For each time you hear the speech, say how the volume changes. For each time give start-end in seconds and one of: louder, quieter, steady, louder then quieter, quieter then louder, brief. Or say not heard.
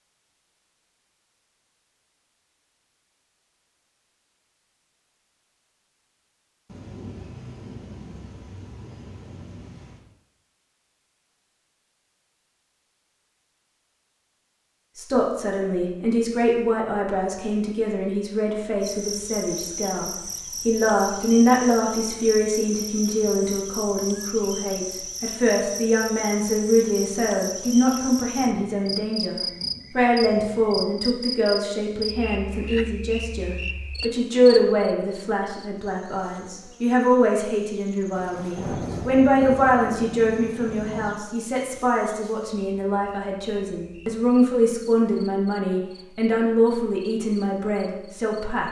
14.9-48.6 steady.